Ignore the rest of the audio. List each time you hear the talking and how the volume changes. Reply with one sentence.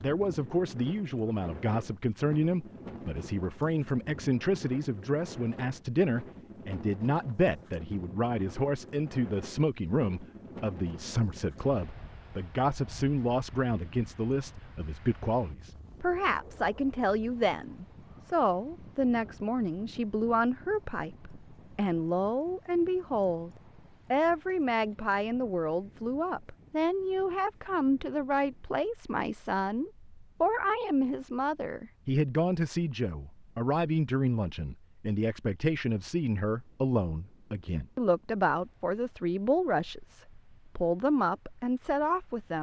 The talking can be heard from 0.0 to 23.5 s, at a steady volume; and from 24.1 to 42.5 s, at a steady volume.